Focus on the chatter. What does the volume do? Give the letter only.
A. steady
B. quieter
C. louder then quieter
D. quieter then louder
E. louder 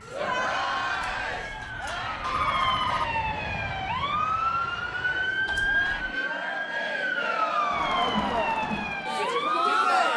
D.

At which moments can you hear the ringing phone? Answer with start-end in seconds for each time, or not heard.
0.9-3.1, 5.5-6.2.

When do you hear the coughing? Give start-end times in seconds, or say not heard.
not heard.